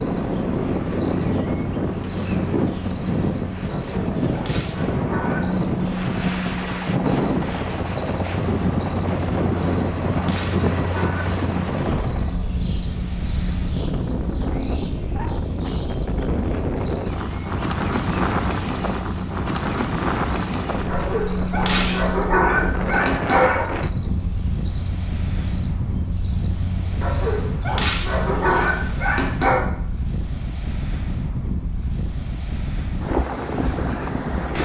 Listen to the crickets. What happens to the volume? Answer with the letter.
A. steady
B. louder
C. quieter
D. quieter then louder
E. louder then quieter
A.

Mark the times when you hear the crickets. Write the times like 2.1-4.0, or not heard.
0.0-28.9.